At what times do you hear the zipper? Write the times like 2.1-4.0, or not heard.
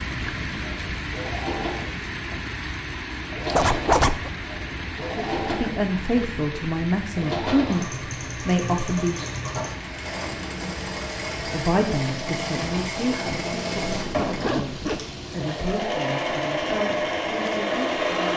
3.5-4.3, 14.0-15.0.